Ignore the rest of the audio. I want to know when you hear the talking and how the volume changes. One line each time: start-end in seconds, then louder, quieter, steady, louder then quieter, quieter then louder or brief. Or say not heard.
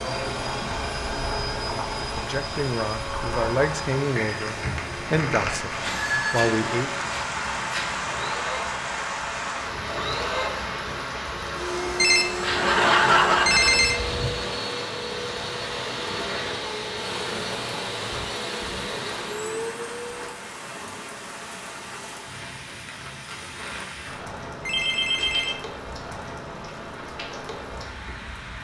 1.9-6.9 steady.